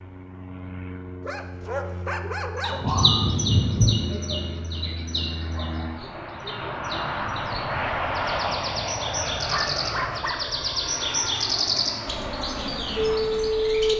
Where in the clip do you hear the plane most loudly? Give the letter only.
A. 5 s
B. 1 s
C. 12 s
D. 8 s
D.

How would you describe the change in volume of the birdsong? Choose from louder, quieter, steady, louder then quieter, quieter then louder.
quieter then louder.